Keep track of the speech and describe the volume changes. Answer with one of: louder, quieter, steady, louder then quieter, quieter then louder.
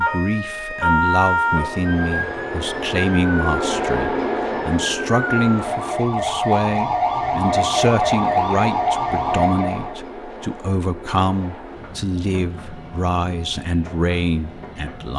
steady.